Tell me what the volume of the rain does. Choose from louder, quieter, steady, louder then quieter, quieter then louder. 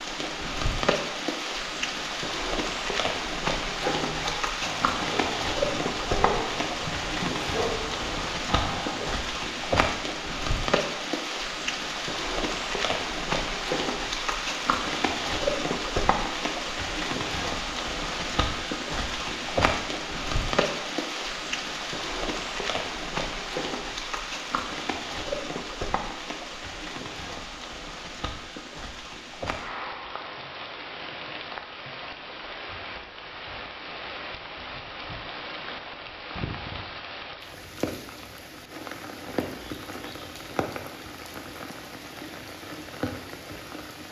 quieter.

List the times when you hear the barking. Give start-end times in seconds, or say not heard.
3.7-9.2.